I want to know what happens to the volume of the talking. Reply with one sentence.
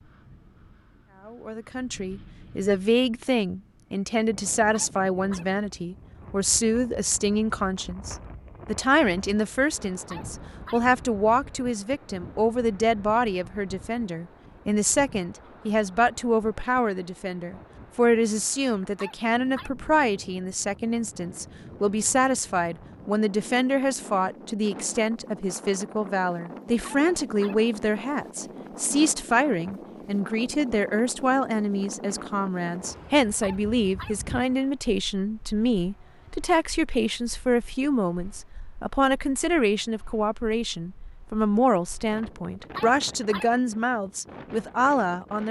The volume of the talking stays about the same.